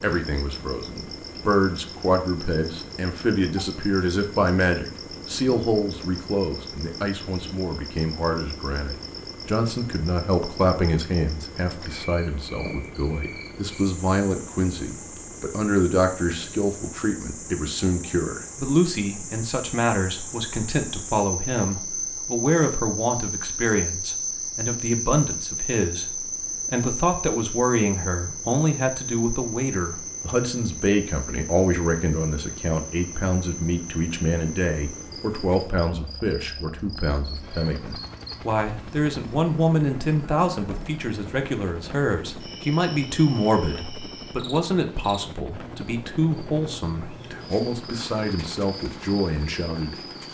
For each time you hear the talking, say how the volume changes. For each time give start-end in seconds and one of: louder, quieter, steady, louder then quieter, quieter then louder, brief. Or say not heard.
0.0-50.3 steady.